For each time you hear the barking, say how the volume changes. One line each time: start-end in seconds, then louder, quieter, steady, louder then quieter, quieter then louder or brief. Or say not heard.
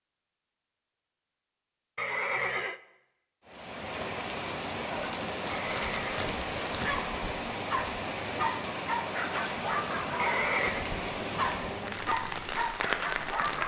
4.9-13.6 steady.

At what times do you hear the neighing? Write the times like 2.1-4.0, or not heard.
1.9-2.8, 5.5-6.2, 10.2-10.8.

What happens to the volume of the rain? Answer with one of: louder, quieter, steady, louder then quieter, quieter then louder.
steady.